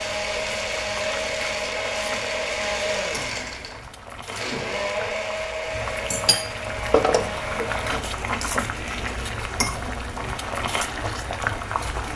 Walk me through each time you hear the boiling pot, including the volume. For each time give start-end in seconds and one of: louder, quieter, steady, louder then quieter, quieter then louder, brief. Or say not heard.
0.0-12.1 louder.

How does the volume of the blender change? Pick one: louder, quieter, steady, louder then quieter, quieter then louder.
quieter.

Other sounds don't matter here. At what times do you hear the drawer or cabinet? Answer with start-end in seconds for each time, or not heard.
6.9-8.0.